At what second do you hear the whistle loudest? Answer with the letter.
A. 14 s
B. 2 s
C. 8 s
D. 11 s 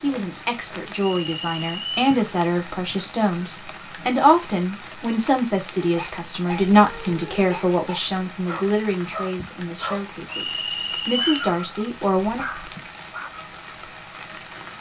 D.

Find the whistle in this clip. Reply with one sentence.
You can hear the whistle from 0.9 to 2.2 s and from 10.2 to 11.5 s.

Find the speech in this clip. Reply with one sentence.
The speech can be heard from 0.0 to 12.4 s.